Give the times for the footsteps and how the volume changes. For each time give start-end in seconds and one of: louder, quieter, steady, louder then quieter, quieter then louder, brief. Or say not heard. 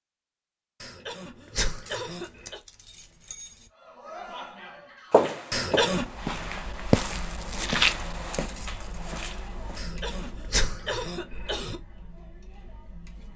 5.1-10.3 louder then quieter.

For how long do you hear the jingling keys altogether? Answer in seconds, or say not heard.
3 s.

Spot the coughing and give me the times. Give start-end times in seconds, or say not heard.
0.8-2.6, 5.5-6.1, 9.8-11.8.